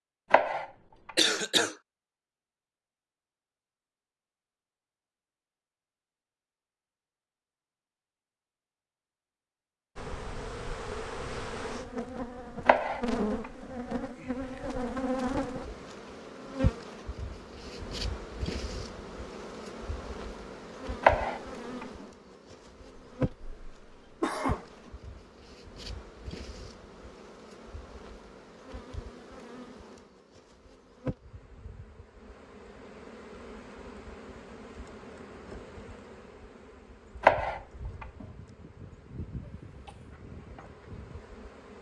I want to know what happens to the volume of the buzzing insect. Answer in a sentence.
The volume of the buzzing insect goes down.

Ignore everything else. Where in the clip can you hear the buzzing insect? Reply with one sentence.
The buzzing insect can be heard from 9.9 to 41.7 s.